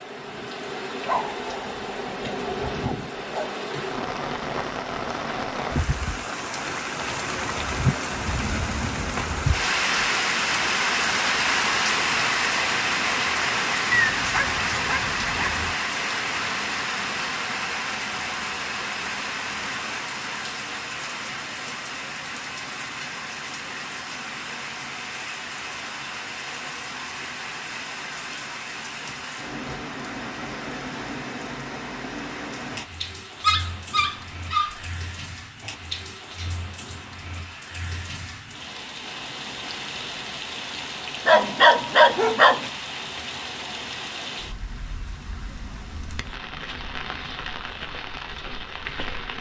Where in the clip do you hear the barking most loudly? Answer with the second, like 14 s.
42 s.